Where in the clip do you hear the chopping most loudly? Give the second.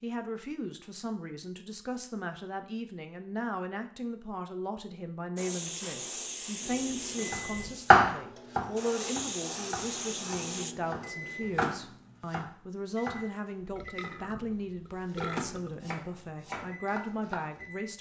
8 s.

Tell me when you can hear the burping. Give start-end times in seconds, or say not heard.
13.8-15.8.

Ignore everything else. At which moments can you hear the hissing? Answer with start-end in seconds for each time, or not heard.
5.3-10.8.